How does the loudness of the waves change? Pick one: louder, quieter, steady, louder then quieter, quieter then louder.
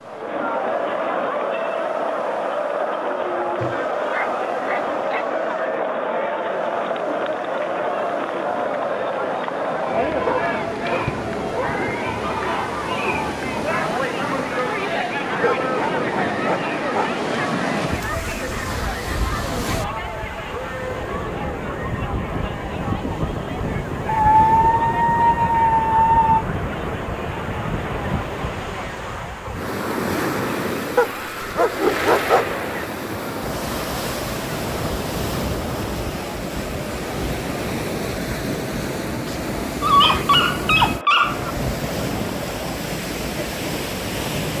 louder.